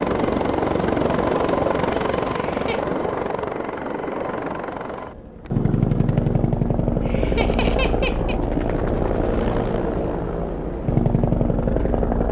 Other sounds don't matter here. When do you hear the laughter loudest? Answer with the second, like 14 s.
8 s.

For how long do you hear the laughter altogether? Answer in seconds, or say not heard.
2 s.